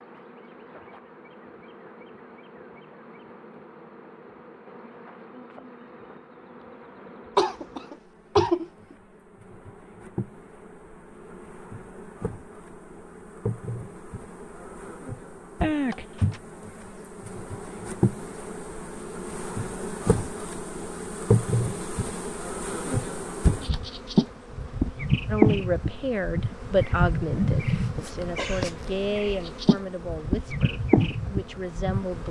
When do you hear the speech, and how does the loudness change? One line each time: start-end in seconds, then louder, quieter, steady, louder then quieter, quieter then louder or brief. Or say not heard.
25.3-32.2 quieter.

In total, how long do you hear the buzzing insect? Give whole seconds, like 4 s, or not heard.
32 s.